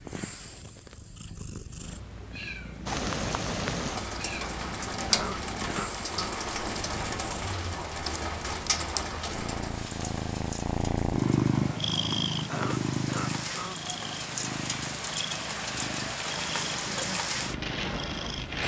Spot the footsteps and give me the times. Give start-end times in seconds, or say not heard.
not heard.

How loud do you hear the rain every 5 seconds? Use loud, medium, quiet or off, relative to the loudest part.
loud, loud, medium, loud.